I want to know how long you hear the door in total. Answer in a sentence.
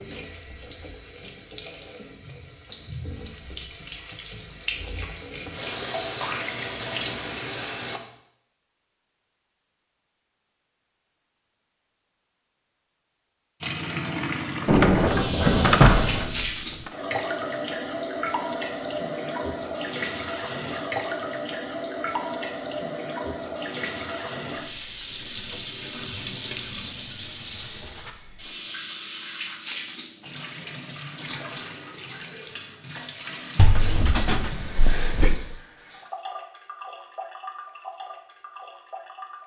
The door can be heard for 4 seconds in total.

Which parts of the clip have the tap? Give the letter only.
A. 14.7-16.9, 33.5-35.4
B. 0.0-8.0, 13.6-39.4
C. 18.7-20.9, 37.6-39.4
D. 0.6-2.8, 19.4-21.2
B.